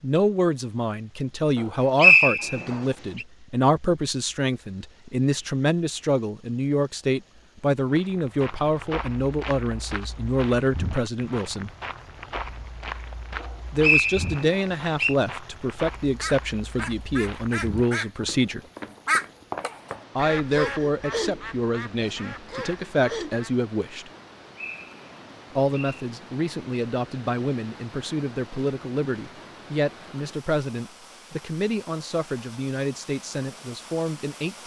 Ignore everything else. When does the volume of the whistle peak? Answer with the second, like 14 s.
2 s.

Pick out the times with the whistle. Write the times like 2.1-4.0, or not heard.
1.9-3.2, 13.4-15.2, 24.6-26.1.